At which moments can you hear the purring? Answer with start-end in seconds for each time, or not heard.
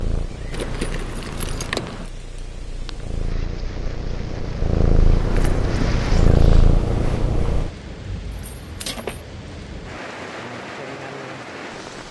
0.0-7.7.